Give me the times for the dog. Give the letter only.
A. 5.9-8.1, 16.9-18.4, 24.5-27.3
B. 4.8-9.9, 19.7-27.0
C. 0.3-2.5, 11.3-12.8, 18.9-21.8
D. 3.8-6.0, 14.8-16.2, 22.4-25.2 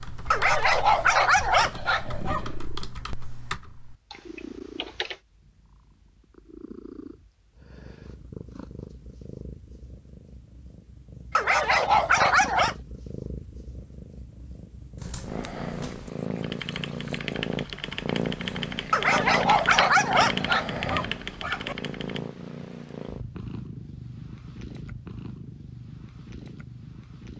C.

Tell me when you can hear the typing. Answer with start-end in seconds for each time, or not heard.
0.0-5.2, 14.9-22.2.